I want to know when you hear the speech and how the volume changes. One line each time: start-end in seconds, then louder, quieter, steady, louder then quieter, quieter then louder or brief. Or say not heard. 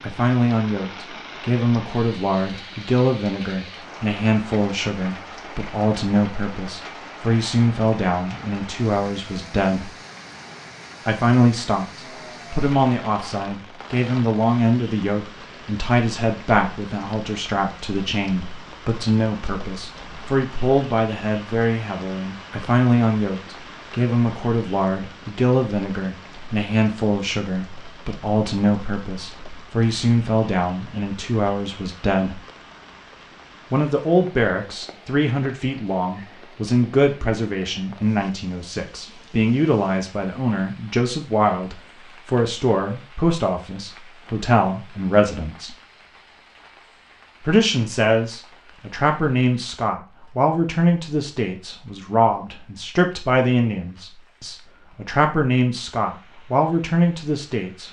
0.0-9.9 steady
11.1-32.4 steady
33.7-45.8 steady
47.4-57.8 steady.